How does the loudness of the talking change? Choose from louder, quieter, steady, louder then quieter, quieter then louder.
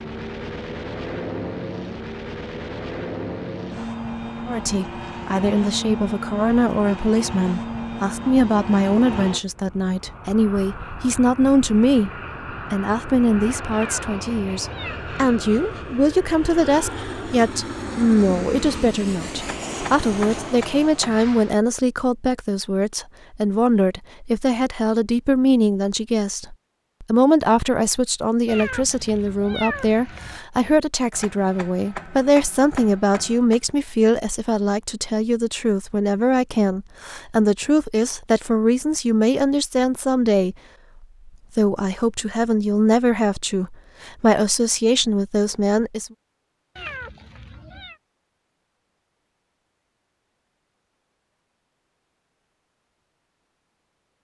steady.